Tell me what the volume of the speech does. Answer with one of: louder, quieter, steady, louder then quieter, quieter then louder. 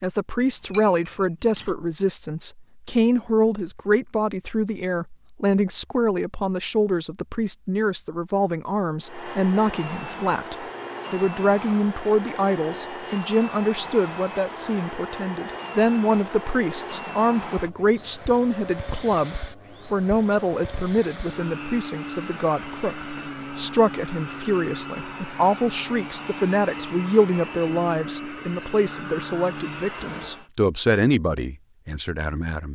steady.